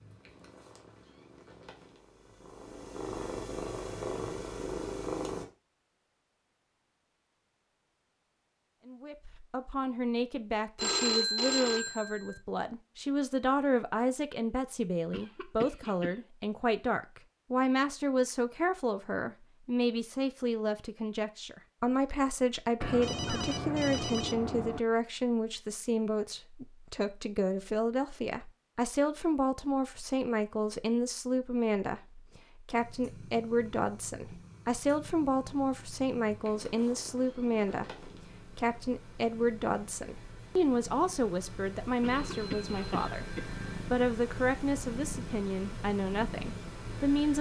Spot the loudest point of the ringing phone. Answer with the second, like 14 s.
11 s.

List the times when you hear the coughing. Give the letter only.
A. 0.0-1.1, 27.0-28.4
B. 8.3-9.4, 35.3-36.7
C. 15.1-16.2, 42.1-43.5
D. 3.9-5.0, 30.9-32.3
C.